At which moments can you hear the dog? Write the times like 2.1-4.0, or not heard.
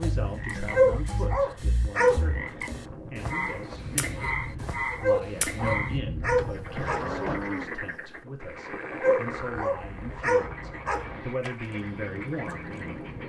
0.7-2.2, 5.0-7.0, 8.9-10.9.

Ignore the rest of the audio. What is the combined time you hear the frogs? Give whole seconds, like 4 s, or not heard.
13 s.